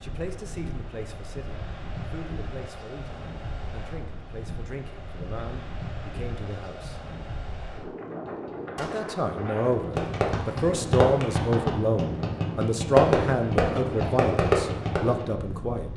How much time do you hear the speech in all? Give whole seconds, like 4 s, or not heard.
14 s.